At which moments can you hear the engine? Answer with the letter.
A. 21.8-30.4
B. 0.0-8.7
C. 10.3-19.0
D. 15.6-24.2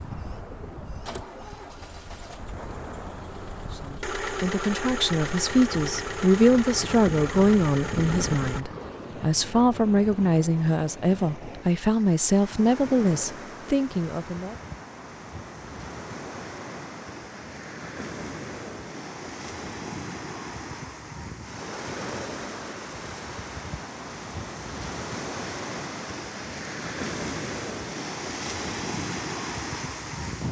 B.